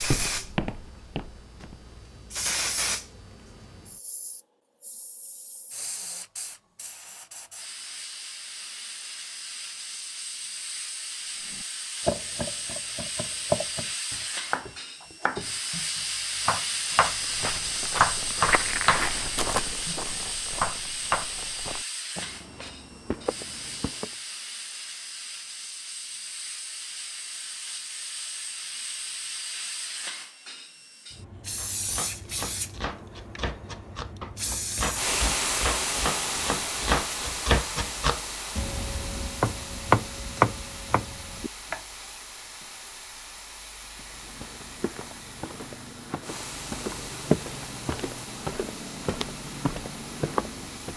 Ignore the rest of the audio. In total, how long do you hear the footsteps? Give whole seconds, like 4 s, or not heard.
16 s.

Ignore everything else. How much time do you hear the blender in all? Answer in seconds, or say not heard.
not heard.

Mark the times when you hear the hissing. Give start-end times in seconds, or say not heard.
0.0-50.9.